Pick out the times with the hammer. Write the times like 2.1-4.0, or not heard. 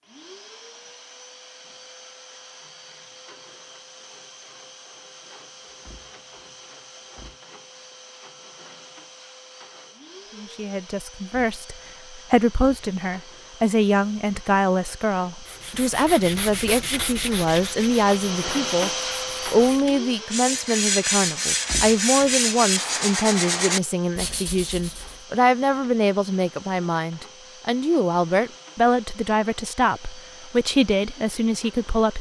not heard.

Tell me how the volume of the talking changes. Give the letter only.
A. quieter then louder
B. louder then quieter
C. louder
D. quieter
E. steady
E.